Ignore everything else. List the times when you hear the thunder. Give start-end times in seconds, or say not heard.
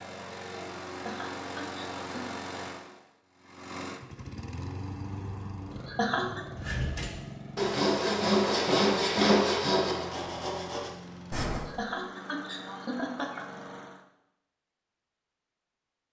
not heard.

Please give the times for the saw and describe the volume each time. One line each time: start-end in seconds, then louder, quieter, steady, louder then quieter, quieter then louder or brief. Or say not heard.
6.5-11.6 louder then quieter.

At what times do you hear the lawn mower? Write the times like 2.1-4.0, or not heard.
0.0-14.1.